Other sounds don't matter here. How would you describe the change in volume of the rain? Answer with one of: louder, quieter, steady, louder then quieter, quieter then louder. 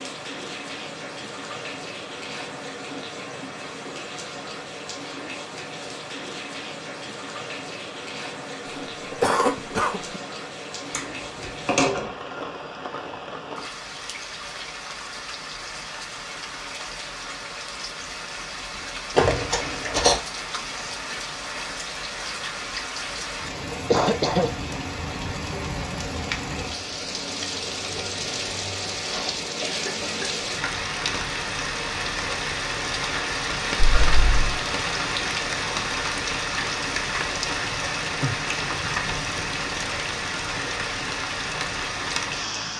louder.